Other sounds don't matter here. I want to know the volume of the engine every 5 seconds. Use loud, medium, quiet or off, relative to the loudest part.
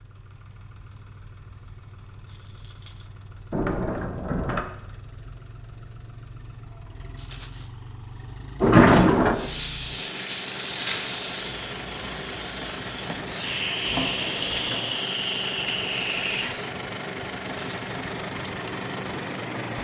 quiet, medium, loud, loud.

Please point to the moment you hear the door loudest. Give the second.
9 s.